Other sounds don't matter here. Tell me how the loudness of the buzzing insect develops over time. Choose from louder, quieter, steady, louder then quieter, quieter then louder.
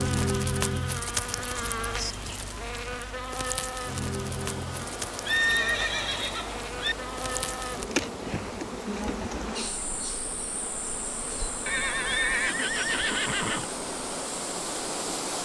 quieter.